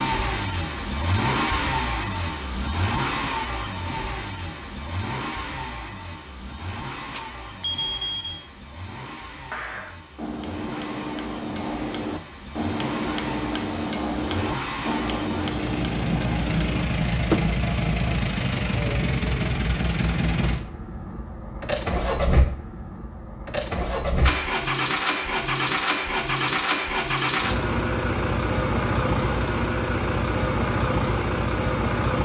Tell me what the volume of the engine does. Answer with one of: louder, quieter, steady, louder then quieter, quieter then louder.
quieter then louder.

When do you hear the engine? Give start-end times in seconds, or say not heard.
0.0-32.2.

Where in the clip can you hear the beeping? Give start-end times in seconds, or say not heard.
7.1-8.4.